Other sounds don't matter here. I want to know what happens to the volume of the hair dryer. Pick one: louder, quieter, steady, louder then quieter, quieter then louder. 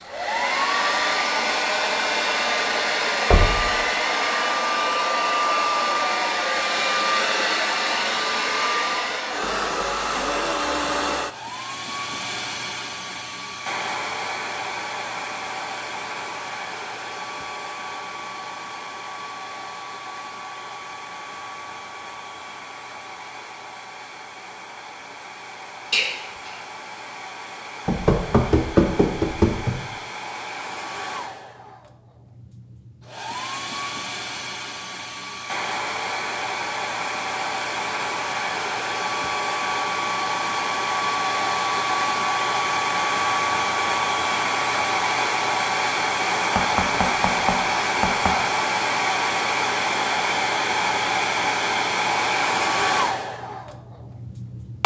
quieter then louder.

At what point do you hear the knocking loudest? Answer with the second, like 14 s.
29 s.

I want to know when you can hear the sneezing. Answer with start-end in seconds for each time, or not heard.
25.9-26.6.